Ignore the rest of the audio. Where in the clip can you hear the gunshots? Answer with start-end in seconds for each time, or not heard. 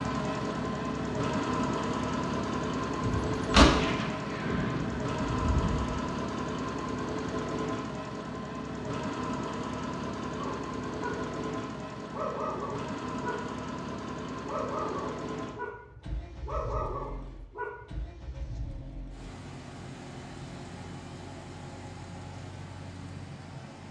3.0-6.0.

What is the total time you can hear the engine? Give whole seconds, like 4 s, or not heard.
24 s.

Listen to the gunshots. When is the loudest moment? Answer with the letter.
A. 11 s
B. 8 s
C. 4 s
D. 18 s
C.